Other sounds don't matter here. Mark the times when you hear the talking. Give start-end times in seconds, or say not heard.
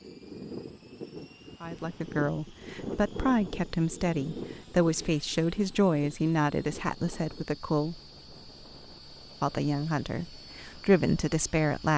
1.6-8.0, 9.4-11.9.